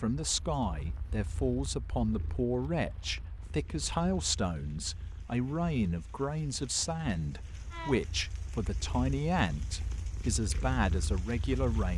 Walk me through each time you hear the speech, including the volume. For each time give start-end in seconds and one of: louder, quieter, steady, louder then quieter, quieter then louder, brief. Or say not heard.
0.0-11.9 steady.